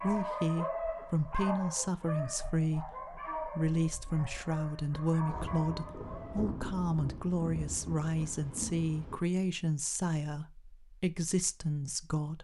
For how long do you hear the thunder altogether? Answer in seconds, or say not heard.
4 s.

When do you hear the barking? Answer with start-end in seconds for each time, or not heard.
0.0-6.5.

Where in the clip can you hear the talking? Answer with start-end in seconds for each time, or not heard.
0.0-12.3.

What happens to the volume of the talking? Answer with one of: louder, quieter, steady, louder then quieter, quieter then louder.
steady.